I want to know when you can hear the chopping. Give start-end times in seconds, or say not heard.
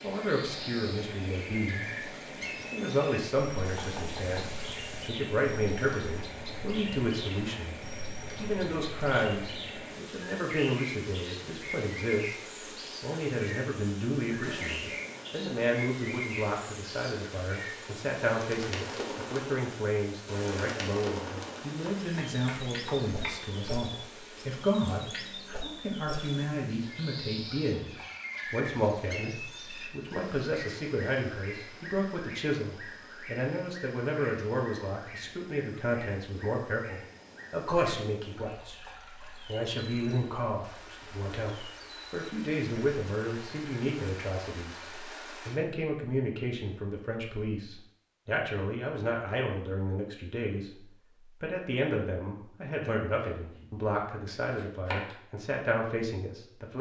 3.6-5.1, 21.8-23.6, 53.4-55.2.